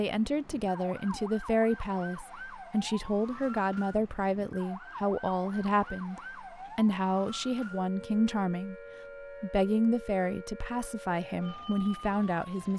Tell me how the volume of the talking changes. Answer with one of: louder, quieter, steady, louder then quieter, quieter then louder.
steady.